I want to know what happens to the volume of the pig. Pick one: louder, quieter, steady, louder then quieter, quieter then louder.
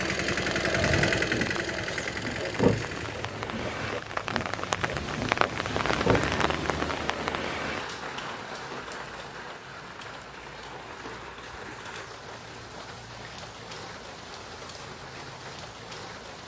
louder then quieter.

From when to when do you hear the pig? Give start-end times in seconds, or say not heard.
0.9-6.5.